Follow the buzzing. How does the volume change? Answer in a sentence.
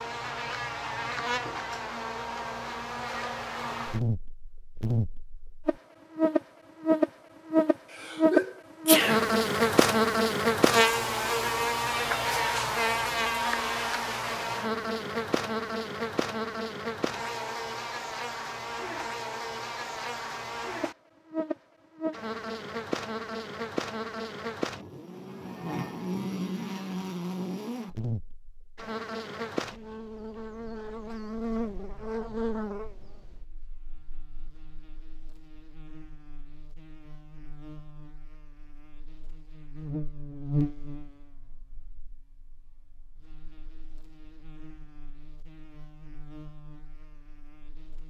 The loudness of the buzzing goes down.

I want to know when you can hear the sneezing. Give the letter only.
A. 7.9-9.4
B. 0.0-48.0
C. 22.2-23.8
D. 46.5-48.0
A.